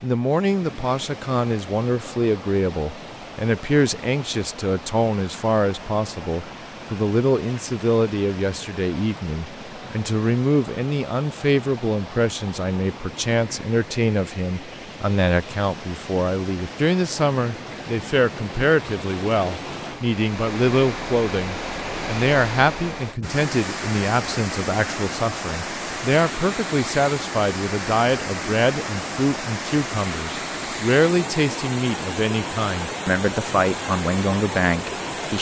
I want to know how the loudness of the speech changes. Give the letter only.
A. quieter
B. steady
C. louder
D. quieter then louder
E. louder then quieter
B.